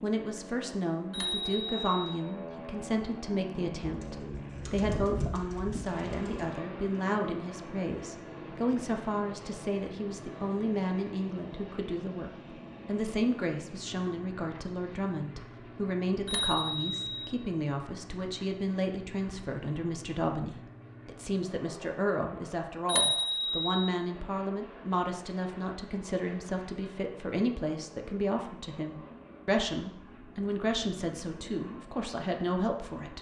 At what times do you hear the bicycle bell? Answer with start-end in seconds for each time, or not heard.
1.1-2.1, 16.2-17.3, 22.9-23.9.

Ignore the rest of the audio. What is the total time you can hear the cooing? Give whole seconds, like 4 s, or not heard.
3 s.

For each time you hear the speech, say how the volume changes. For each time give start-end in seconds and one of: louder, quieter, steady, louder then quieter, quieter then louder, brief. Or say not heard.
0.0-33.1 steady.